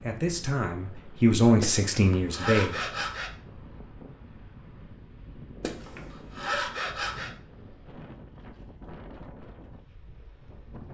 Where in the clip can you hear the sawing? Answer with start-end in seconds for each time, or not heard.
1.6-3.3, 5.6-7.3.